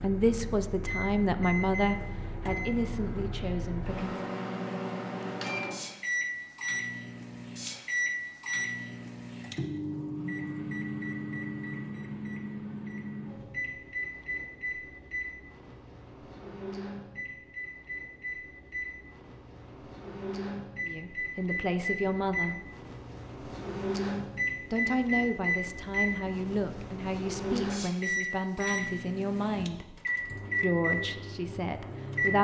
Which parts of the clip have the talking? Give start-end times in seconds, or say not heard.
0.0-4.2, 20.8-22.6, 24.7-30.0, 30.6-32.4.